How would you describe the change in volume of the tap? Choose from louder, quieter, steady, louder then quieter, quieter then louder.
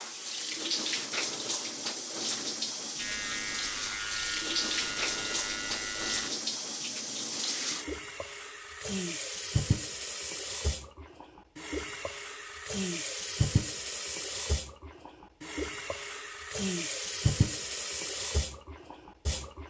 steady.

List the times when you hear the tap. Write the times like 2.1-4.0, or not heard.
0.0-19.6.